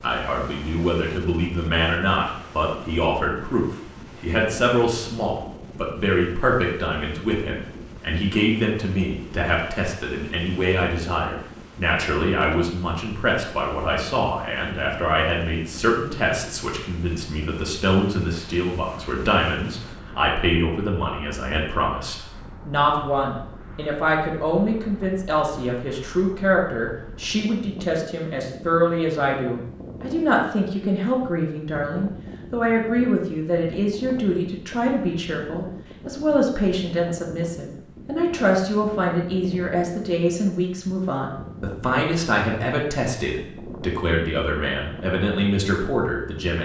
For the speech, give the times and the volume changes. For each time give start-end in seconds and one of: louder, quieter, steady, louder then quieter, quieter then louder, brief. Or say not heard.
0.0-46.5 steady.